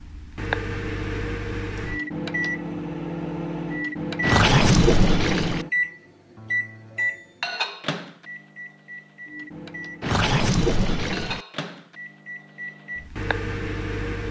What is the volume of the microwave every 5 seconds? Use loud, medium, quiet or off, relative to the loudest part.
loud, loud, medium.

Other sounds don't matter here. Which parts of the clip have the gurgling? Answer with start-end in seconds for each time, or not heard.
4.2-5.7, 10.0-11.4.